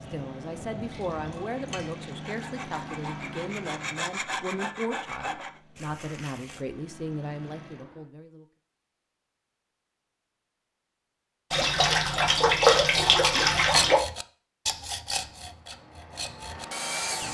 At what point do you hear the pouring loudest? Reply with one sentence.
The volume of the pouring peaks at 13 seconds.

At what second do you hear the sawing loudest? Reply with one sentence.
The volume of the sawing peaks at 14 seconds.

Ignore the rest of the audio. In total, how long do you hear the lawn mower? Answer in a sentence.
The lawn mower can be heard for 10 seconds in total.